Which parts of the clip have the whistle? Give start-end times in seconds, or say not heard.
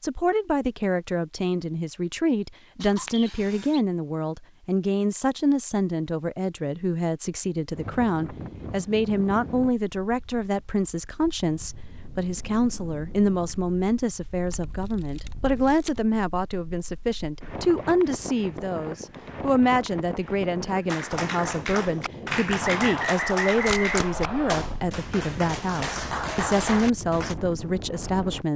3.1-3.9, 22.6-24.6.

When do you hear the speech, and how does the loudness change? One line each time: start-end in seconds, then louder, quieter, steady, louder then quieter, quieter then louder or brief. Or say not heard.
0.0-28.5 steady.